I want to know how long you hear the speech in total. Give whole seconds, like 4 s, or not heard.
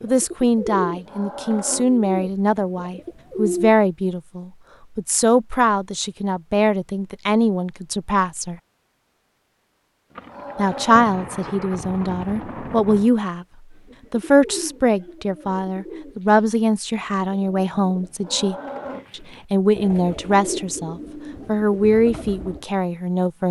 21 s.